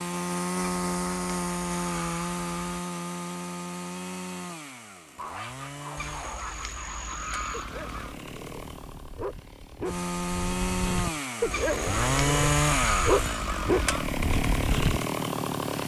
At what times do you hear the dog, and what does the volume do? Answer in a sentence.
The dog can be heard from 5.2 to 15.1 s, getting louder.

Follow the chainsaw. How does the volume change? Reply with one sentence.
The loudness of the chainsaw goes down, then up.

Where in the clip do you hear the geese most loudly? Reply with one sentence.
The volume of the geese peaks at 13 seconds.